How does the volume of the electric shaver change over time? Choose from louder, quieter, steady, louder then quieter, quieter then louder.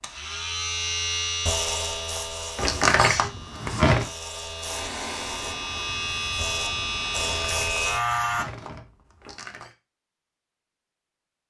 quieter then louder.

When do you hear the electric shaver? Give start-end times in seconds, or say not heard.
0.0-8.4.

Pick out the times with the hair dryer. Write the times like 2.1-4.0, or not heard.
4.6-7.3.